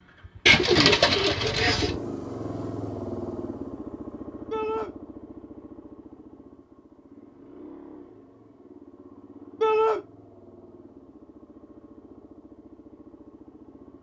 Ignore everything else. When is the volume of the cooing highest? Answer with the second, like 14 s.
1 s.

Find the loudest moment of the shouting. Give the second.
10 s.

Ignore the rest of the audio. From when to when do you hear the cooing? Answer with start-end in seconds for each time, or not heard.
0.5-1.9.